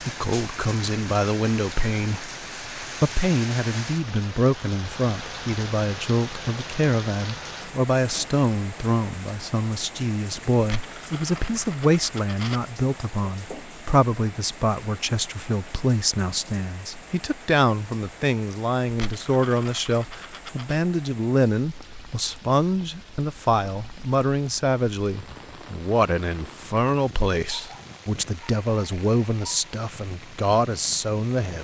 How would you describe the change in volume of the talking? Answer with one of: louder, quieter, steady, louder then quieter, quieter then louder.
steady.